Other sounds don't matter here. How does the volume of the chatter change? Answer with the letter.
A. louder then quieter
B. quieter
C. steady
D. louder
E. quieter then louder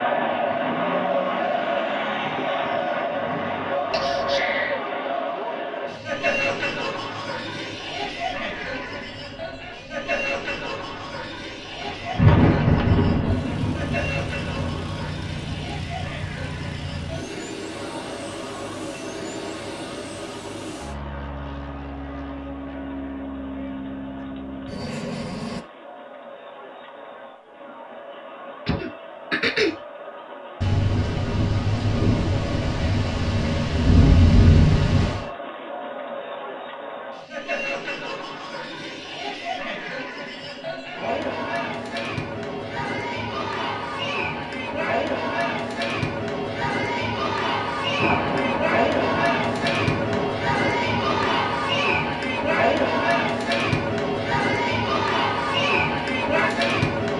E.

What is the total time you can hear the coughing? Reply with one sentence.
You can hear the coughing for 2 seconds altogether.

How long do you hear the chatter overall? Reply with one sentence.
You can hear the chatter for 57 seconds altogether.